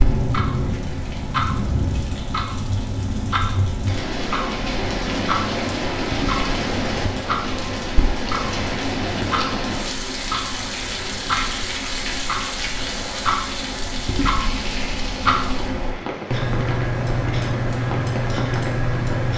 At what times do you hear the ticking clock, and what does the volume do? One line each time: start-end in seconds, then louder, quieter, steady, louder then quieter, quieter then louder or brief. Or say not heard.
0.0-19.3 louder.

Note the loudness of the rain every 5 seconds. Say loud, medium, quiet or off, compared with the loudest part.
loud, loud, loud, medium.